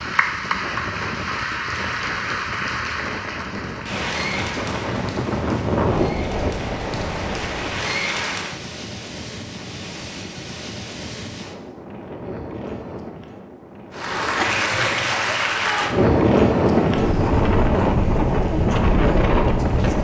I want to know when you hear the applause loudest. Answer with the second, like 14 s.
15 s.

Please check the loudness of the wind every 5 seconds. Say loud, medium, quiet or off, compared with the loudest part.
quiet, medium, quiet, loud.